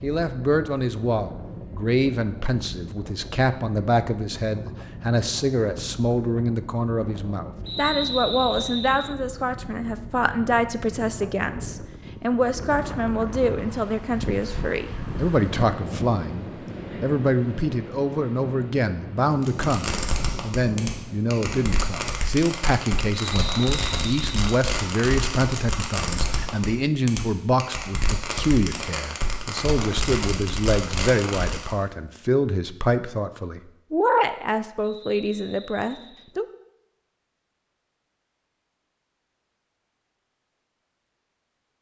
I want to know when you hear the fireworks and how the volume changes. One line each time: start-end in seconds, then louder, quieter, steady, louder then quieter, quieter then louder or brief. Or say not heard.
19.3-31.8 steady.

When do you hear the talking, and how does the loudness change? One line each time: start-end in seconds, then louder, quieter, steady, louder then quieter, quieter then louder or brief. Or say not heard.
0.0-36.5 steady.